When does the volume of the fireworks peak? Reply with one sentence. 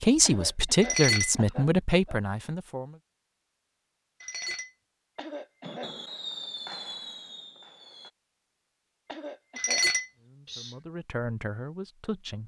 The loudest moment of the fireworks is at 6 seconds.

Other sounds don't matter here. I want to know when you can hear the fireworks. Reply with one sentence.
The fireworks can be heard from 5.6 to 8.1 s.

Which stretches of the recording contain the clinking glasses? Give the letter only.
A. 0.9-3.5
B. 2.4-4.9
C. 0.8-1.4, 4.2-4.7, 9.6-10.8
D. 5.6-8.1
C.